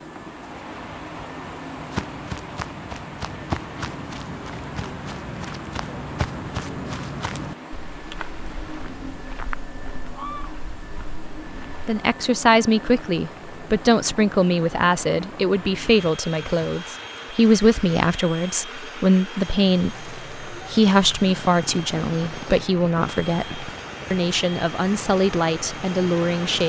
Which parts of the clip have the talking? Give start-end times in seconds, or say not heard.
11.8-26.6.